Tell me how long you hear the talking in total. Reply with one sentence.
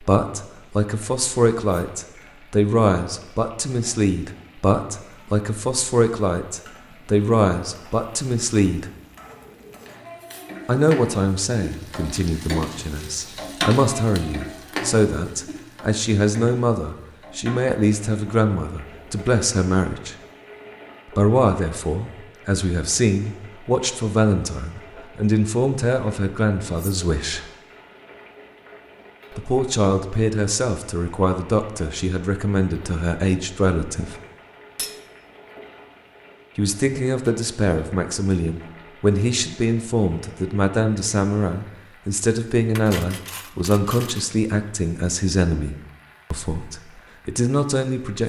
You can hear the talking for 41 seconds altogether.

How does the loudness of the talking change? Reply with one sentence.
The loudness of the talking stays about the same.